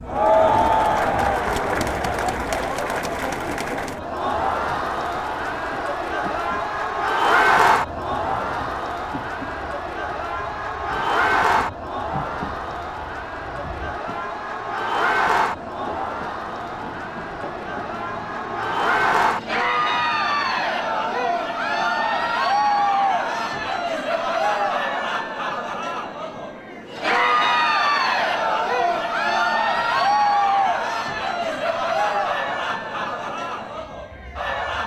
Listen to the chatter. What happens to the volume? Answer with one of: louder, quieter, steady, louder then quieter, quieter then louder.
steady.